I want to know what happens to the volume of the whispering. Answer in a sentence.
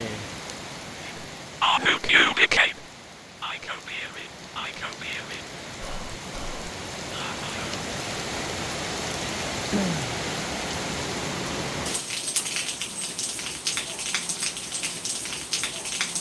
The volume of the whispering goes down.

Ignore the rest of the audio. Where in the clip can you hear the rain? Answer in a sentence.
You can hear the rain from 0.0 to 16.1 s.